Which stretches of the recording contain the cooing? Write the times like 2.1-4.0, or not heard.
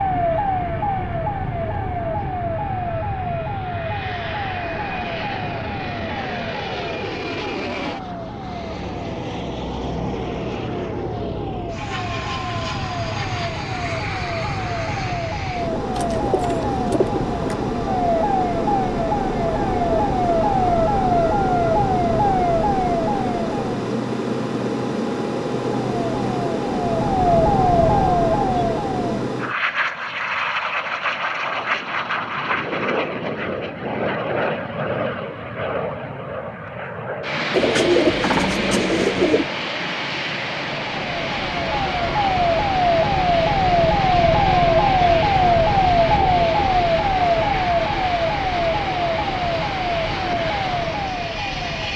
15.9-17.6, 37.5-39.5.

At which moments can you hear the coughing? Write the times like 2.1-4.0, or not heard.
not heard.